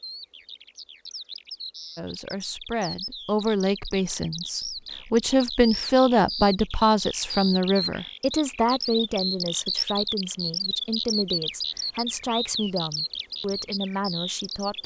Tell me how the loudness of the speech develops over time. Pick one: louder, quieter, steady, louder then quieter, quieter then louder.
louder then quieter.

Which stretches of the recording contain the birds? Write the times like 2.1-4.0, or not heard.
0.0-14.8.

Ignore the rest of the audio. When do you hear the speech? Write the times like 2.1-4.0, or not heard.
1.9-14.8.